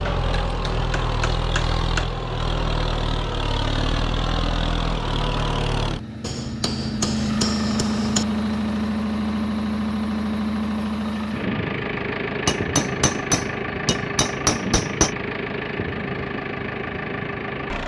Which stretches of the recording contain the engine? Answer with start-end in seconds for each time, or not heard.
0.0-17.8.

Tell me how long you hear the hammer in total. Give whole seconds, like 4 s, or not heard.
7 s.